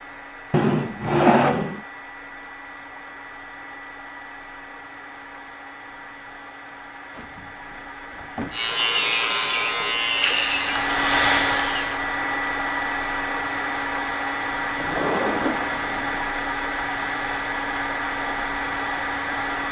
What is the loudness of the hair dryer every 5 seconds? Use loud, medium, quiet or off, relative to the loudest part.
quiet, quiet, loud, loud.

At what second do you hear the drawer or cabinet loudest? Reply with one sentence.
The volume of the drawer or cabinet peaks at 1 second.